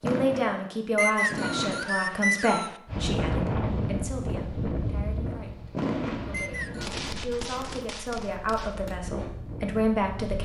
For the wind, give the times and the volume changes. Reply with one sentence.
The wind can be heard from 2.9 to 10.4 s, getting quieter then louder.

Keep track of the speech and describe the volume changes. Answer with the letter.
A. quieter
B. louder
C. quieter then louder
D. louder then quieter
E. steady
C.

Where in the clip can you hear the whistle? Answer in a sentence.
The whistle can be heard from 0.9 to 2.8 s and from 6.3 to 7.0 s.